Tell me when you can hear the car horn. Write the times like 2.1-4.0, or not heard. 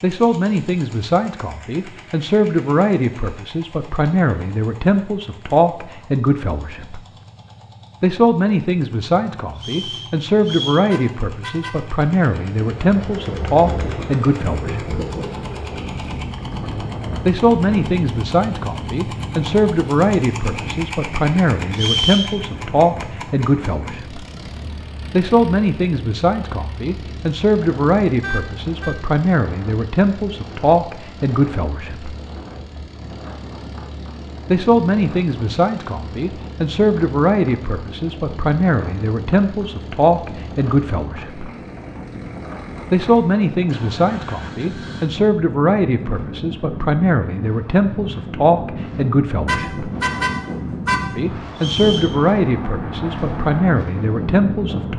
10.9-11.9, 28.2-28.9, 49.5-51.1.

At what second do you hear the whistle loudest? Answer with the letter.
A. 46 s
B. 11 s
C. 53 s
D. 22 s
D.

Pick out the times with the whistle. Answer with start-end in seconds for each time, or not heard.
9.6-10.8, 21.7-22.3, 51.5-52.1.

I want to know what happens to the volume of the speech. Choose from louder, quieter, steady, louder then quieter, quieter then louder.
steady.